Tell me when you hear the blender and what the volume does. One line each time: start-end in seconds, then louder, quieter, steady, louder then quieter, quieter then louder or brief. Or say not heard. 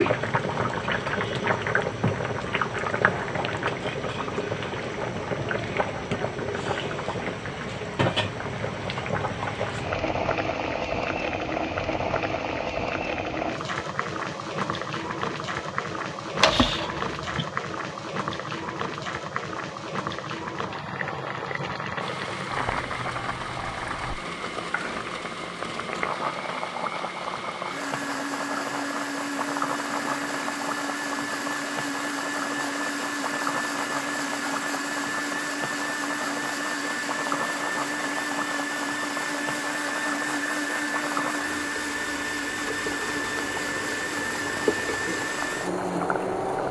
22.0-46.6 louder.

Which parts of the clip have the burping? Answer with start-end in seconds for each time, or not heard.
16.4-17.4.